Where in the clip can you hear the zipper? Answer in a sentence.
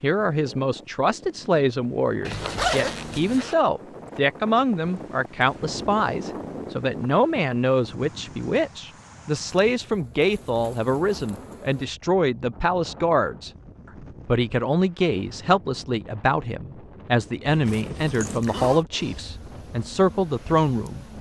The zipper can be heard from 2.2 to 3.5 s and from 17.4 to 18.9 s.